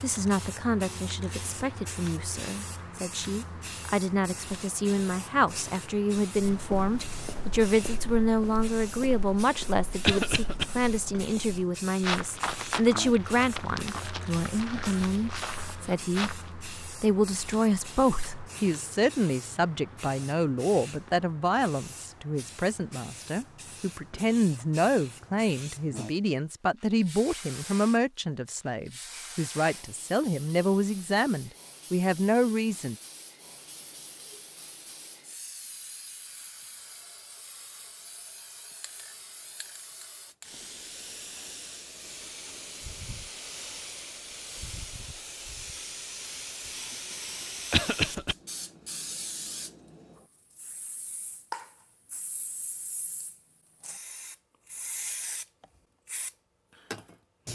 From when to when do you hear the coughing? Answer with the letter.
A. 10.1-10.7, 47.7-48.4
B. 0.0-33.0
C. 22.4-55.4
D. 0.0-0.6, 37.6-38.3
A.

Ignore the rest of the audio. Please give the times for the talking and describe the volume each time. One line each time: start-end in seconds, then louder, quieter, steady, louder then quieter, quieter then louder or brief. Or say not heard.
0.0-33.0 steady.